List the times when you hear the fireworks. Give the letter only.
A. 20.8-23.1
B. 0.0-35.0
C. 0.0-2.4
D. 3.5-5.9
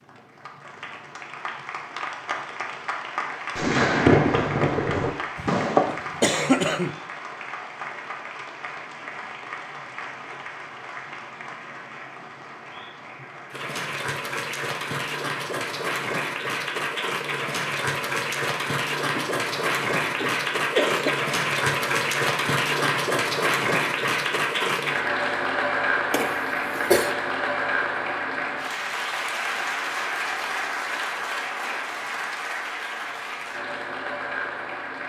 D.